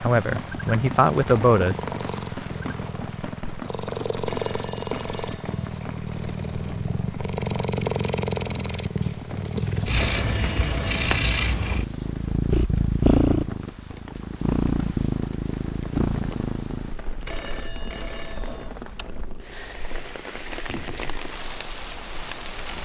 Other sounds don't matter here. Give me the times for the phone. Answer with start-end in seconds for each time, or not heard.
4.2-5.7, 9.8-11.2, 17.1-18.7.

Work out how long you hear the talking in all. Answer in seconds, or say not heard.
2 s.